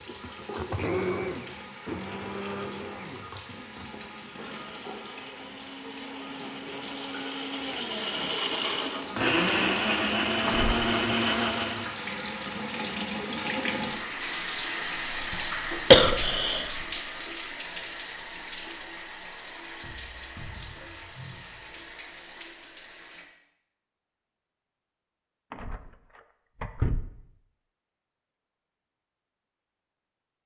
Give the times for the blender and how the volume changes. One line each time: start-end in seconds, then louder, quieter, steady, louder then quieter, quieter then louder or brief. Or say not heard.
0.0-11.9 quieter then louder.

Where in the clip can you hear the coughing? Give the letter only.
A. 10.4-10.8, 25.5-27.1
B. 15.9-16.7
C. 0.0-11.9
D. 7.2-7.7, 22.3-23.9
B.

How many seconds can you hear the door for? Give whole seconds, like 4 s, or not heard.
2 s.